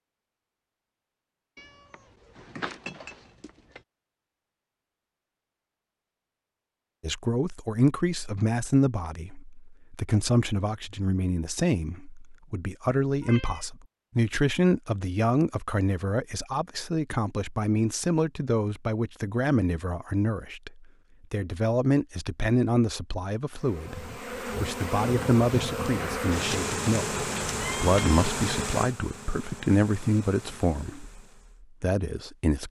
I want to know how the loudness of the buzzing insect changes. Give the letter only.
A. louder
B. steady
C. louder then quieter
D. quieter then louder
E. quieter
E.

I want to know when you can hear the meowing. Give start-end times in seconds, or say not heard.
1.6-3.8, 13.2-13.7, 26.3-28.4.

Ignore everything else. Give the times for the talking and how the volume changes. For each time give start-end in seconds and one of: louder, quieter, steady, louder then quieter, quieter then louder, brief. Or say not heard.
7.0-31.2 steady
31.8-32.6 brief.